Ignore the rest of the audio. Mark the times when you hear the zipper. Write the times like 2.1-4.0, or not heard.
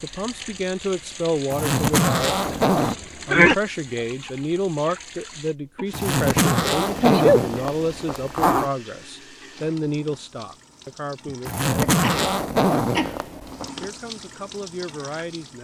1.5-3.0, 5.9-8.7, 11.4-13.7.